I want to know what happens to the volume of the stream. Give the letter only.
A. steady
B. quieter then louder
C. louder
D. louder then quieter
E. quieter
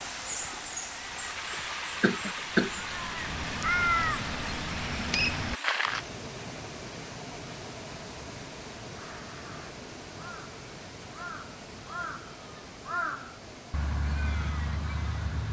E.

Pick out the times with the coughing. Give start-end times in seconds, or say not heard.
2.0-2.8.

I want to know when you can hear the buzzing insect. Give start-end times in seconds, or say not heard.
not heard.